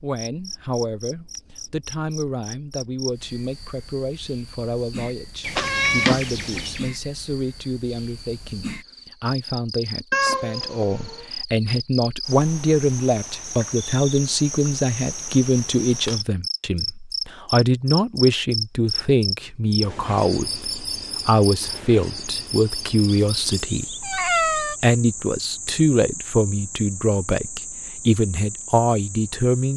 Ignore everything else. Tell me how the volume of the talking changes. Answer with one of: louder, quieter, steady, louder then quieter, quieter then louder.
louder.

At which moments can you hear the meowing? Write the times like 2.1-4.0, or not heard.
5.5-6.8, 10.1-11.2, 23.1-24.8.